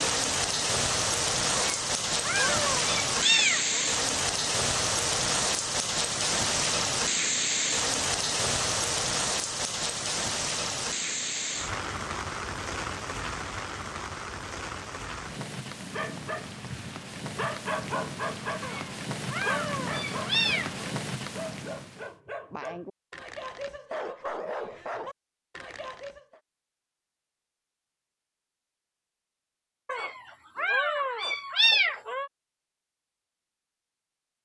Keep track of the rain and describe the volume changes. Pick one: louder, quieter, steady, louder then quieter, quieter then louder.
quieter.